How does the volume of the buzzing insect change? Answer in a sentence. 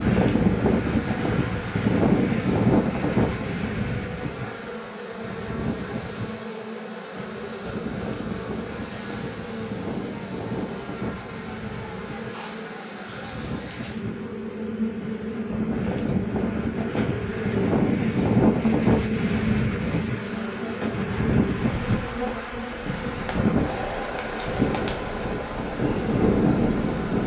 The volume of the buzzing insect goes up, then down.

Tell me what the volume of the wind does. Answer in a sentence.
The loudness of the wind goes down, then up.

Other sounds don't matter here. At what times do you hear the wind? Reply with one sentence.
You can hear the wind from 0.0 to 27.2 s.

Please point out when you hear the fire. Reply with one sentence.
The fire can't be heard in this clip.